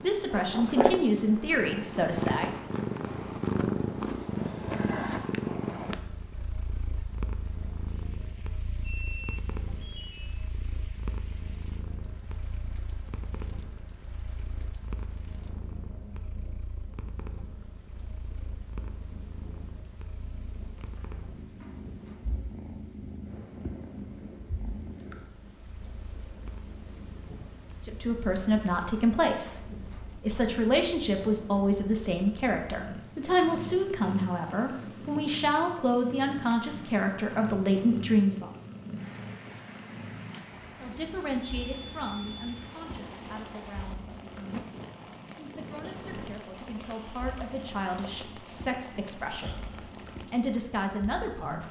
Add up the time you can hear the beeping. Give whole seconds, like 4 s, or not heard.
3 s.